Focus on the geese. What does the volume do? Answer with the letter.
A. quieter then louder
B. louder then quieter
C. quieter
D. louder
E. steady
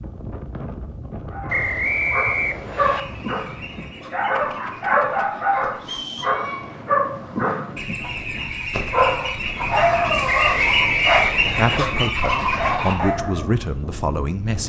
D.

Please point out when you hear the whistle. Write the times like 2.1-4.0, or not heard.
1.4-3.0, 5.8-6.4, 10.2-11.8.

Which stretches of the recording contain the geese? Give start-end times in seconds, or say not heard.
2.8-12.9.